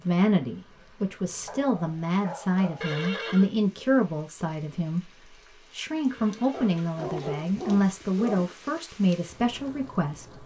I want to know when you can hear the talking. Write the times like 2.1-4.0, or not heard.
0.1-5.1, 5.8-10.4.